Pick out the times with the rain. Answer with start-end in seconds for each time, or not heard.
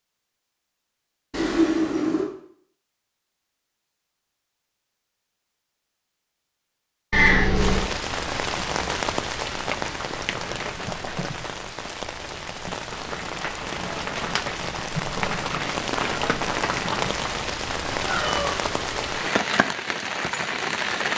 7.5-21.1.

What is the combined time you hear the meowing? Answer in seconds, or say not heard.
3 s.